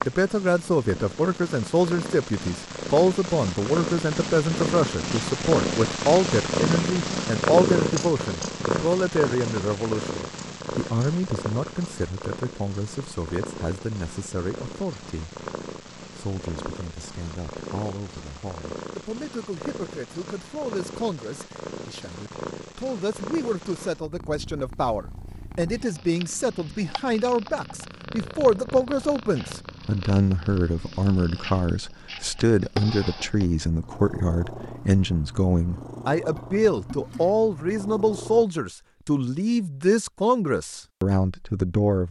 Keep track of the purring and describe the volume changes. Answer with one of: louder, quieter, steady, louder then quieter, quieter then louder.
quieter.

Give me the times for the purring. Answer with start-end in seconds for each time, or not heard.
0.0-38.5.